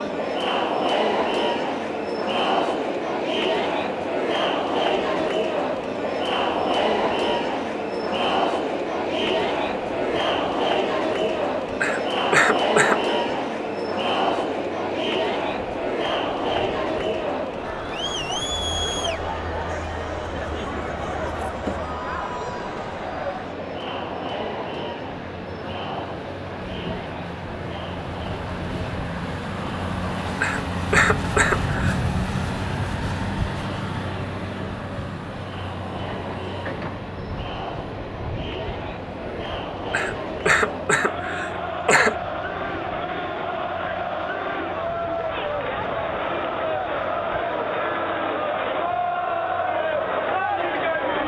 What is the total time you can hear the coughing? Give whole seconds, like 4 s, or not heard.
5 s.